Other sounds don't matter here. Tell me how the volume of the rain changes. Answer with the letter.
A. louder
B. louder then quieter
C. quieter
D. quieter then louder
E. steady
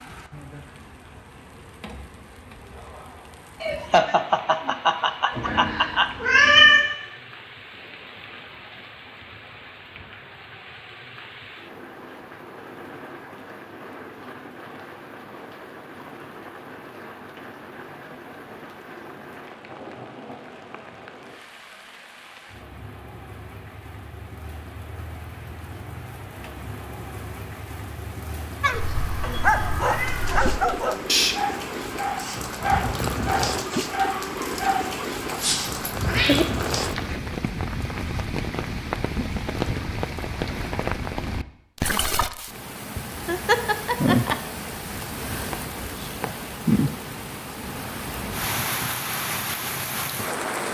A.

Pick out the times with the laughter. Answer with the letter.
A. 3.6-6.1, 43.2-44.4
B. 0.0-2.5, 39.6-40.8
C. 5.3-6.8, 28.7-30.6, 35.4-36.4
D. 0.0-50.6
A.